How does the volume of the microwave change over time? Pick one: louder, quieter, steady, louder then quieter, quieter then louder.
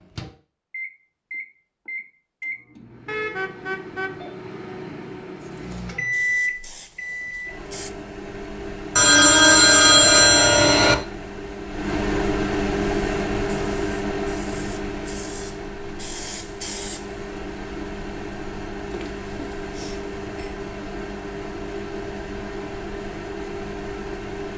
louder then quieter.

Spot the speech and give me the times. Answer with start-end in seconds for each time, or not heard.
not heard.